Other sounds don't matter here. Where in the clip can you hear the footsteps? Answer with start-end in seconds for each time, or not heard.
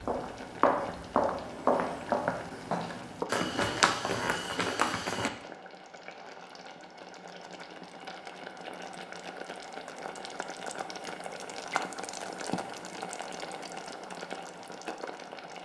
0.0-5.3.